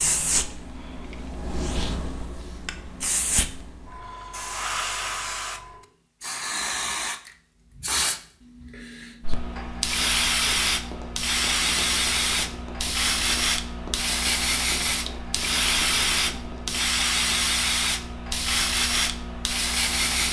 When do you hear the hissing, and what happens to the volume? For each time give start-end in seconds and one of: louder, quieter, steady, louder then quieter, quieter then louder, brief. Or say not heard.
0.0-20.2 louder.